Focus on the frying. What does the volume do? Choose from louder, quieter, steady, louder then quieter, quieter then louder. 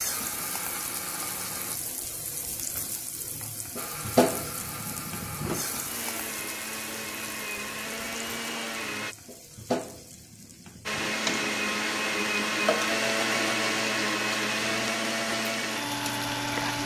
louder then quieter.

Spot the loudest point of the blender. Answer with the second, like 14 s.
13 s.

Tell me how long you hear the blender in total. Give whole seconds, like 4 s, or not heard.
13 s.